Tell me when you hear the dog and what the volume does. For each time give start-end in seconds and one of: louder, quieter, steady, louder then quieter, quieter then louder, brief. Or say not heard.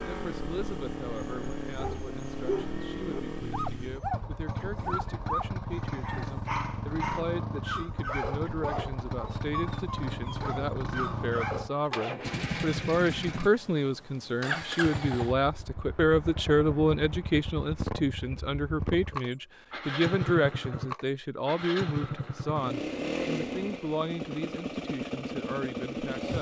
1.8-12.2 steady.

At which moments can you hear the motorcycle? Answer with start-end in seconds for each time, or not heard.
0.0-26.3.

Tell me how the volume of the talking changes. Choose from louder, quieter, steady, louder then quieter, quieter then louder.
louder then quieter.